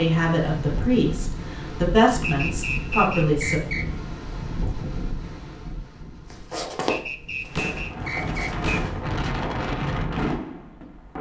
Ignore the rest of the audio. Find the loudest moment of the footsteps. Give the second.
7 s.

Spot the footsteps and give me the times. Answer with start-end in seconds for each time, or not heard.
6.3-8.7.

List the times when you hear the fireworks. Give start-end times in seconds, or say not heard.
7.5-11.0.